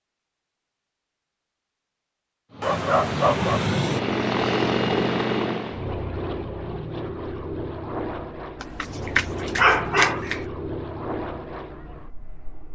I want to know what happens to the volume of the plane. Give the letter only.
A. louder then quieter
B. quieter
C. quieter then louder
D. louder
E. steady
B.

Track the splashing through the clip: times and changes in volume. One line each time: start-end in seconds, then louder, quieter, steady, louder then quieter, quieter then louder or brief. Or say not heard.
not heard.